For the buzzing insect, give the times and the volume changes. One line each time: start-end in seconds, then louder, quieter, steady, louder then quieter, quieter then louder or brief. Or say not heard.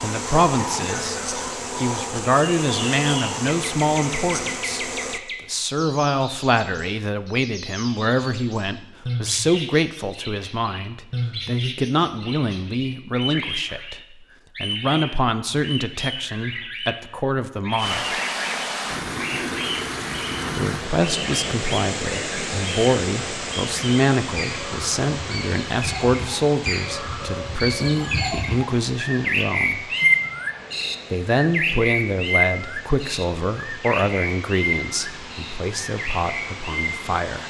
0.0-5.2 steady.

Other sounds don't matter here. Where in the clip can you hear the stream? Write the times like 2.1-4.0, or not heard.
17.8-37.4.